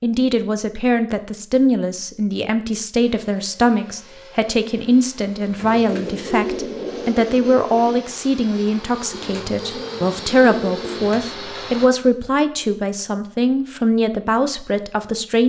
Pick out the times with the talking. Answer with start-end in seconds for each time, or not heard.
0.0-15.4.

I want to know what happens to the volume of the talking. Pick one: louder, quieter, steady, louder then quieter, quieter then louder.
steady.